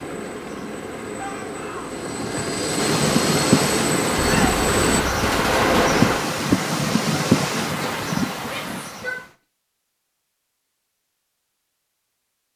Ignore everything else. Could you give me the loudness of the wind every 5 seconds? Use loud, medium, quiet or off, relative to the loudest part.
loud, loud, off.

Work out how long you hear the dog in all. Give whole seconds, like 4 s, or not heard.
not heard.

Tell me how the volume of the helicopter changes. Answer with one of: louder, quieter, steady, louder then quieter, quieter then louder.
louder.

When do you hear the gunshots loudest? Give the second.
6 s.